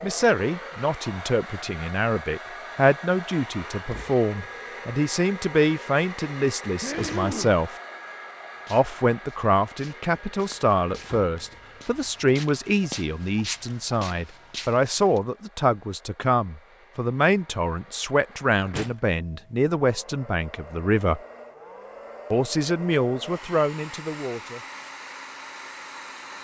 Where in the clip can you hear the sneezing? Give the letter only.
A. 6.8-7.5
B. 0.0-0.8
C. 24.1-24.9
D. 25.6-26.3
A.